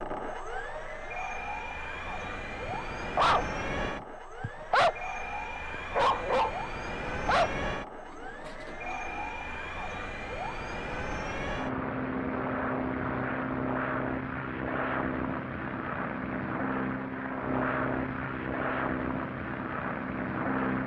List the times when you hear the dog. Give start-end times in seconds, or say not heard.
2.6-5.0, 5.7-7.8.